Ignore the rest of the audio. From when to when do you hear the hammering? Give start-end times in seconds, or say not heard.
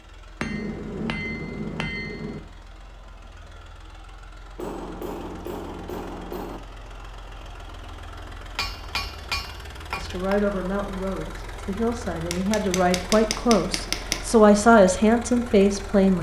0.4-2.4, 4.5-6.6, 8.6-10.3, 12.3-14.2.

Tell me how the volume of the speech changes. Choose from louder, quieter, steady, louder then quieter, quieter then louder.
louder.